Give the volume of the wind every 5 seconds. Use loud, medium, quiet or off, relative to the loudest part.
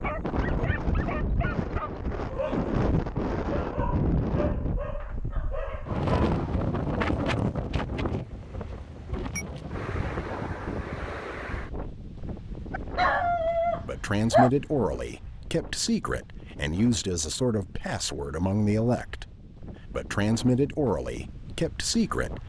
loud, loud, medium, quiet, quiet.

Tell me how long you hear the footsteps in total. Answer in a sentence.
You can't hear the footsteps here.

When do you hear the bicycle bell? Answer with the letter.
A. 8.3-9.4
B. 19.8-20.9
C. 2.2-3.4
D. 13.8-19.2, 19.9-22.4
A.